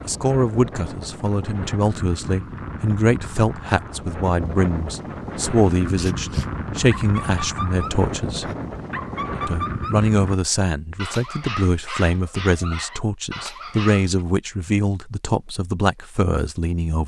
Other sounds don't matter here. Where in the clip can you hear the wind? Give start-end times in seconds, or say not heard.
0.0-10.3.